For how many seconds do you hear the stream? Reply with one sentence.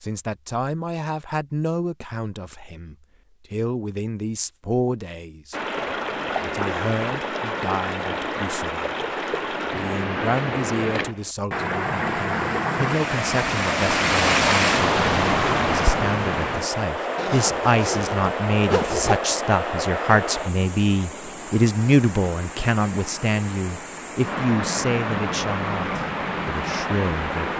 The stream can be heard for 22 seconds in total.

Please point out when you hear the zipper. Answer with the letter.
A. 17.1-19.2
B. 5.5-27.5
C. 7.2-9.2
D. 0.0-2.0
A.